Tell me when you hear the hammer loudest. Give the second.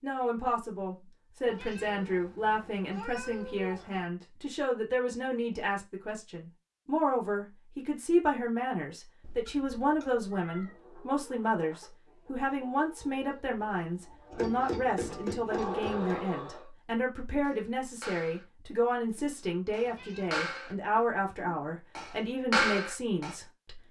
23 s.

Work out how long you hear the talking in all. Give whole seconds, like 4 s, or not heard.
24 s.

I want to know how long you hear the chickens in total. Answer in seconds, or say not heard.
6 s.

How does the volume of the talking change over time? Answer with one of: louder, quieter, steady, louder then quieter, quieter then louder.
steady.